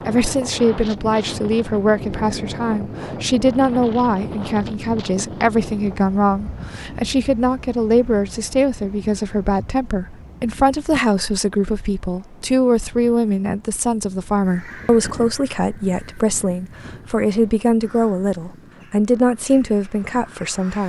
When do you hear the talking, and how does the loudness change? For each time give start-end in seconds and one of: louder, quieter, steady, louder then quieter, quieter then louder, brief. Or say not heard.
0.1-20.8 steady.